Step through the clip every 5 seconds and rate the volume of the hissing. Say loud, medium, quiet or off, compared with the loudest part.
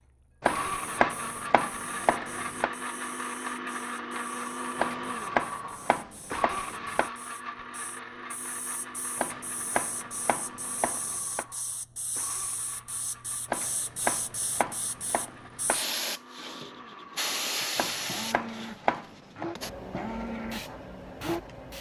quiet, quiet, medium, loud, medium.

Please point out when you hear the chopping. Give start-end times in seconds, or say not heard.
0.4-2.7, 4.8-7.1, 9.2-11.4, 13.5-15.8, 17.8-19.4.